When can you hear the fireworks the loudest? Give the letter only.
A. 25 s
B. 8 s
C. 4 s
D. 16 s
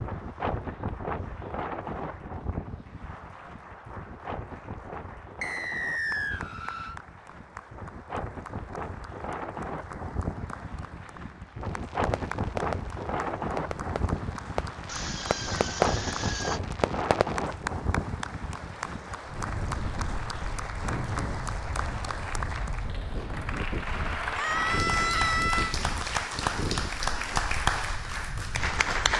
D.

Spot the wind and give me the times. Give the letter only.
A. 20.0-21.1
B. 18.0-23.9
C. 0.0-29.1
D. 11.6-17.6
C.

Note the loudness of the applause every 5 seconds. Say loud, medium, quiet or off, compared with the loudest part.
quiet, quiet, quiet, medium, medium, loud.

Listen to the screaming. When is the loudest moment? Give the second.
25 s.